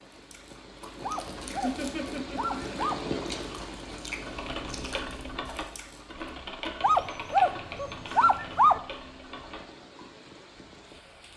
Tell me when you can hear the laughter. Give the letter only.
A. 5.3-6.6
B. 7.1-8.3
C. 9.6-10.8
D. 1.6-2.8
D.